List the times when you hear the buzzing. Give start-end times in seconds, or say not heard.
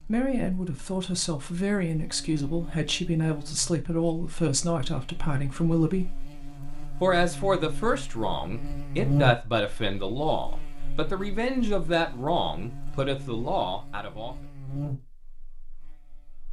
0.0-16.4.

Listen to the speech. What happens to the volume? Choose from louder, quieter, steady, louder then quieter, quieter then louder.
steady.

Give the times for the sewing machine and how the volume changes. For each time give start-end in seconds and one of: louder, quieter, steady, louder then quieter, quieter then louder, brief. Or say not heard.
not heard.